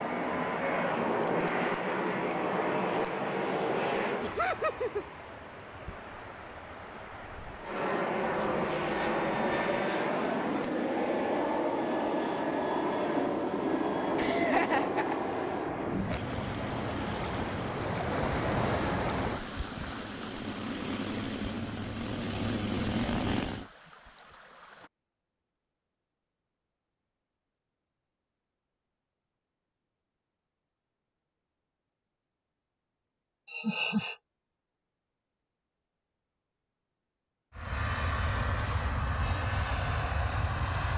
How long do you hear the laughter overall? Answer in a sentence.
The laughter can be heard for 3 seconds in total.